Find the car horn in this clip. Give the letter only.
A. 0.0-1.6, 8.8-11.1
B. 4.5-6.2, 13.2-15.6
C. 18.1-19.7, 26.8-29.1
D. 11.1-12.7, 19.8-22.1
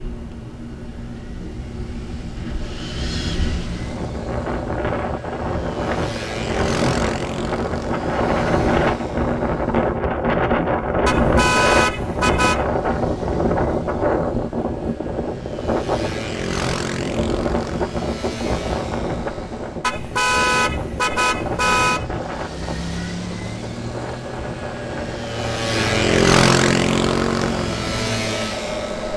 D.